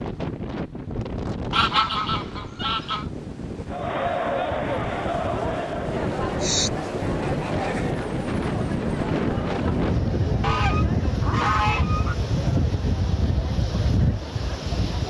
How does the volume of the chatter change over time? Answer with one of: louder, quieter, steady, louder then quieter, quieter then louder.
quieter.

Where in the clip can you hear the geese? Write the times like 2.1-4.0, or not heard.
1.5-3.0, 6.4-7.9, 10.4-12.2.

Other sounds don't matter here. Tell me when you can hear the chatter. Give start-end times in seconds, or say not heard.
3.6-15.0.